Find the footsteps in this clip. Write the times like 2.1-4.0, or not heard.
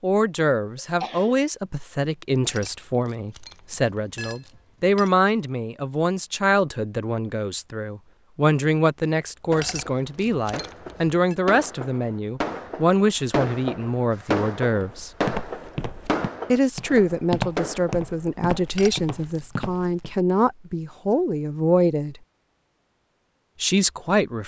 14.8-20.1.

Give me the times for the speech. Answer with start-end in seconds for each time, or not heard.
0.0-15.1, 16.5-22.1, 23.6-24.4.